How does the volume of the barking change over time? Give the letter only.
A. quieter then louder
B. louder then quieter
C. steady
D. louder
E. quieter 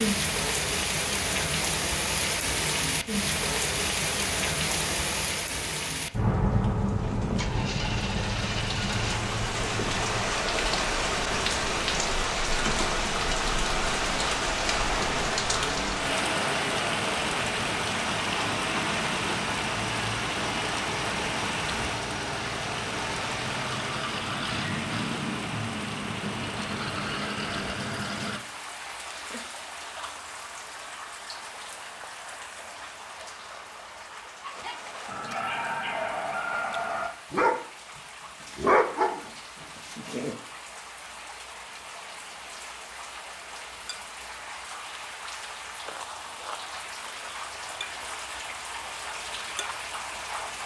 B.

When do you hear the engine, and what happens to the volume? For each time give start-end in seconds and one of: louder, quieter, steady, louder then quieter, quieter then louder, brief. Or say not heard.
7.0-28.4 steady.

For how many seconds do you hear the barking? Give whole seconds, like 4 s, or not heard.
6 s.